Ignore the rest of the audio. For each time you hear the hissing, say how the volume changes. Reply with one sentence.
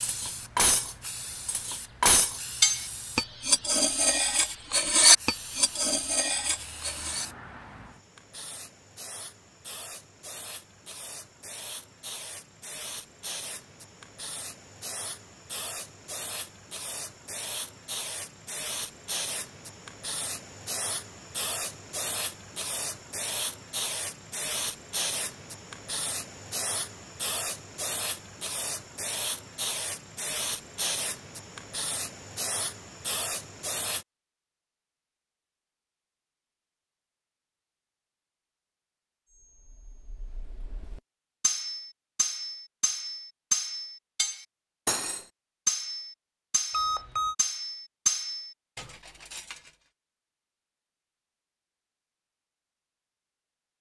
The hissing can be heard from 0.0 to 34.0 s, getting louder.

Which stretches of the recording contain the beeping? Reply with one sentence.
You can hear the beeping from 46.7 to 47.4 s.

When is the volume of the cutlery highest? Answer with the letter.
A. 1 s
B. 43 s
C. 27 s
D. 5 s
D.